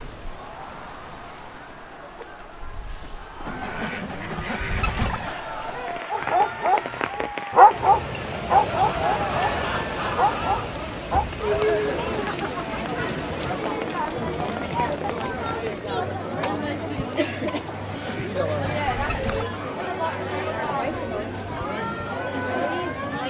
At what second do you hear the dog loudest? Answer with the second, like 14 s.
8 s.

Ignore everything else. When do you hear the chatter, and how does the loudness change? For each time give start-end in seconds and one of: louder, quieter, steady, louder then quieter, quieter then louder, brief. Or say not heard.
0.1-23.2 louder.